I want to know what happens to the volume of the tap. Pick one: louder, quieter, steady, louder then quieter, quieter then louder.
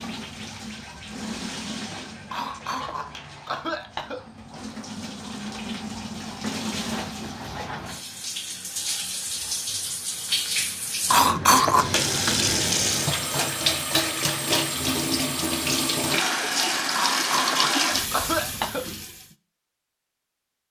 louder.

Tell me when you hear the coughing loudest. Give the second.
12 s.